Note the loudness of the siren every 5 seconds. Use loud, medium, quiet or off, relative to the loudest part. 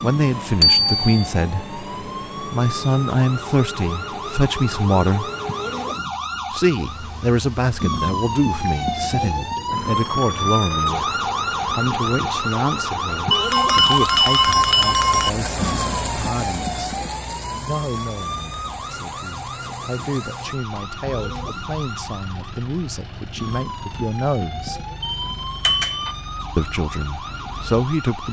medium, loud, loud, medium, medium, medium.